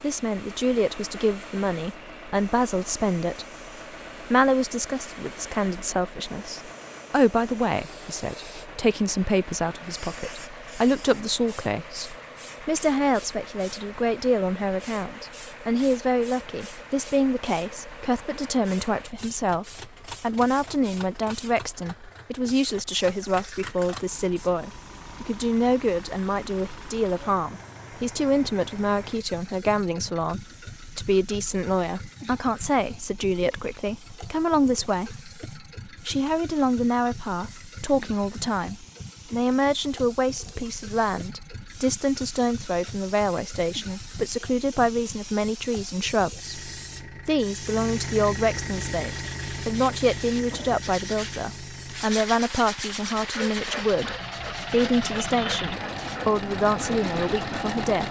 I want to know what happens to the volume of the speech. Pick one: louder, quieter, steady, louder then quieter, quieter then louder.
steady.